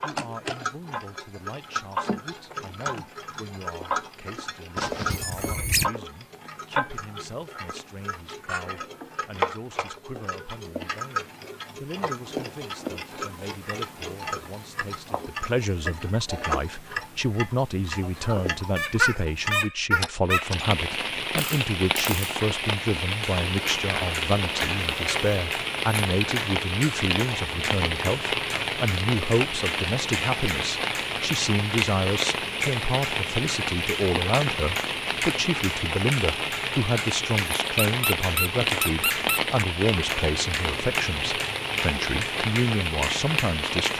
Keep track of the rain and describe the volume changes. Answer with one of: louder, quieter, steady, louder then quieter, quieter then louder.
steady.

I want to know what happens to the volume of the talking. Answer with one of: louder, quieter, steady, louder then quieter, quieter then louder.
louder.